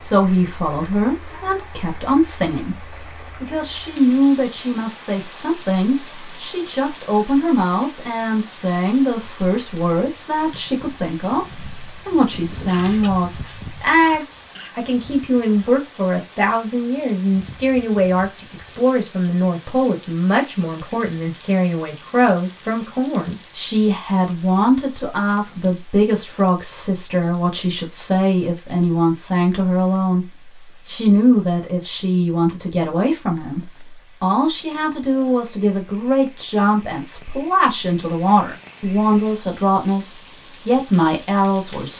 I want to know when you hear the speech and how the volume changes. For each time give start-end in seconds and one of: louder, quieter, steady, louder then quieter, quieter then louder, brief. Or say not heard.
0.0-41.9 steady.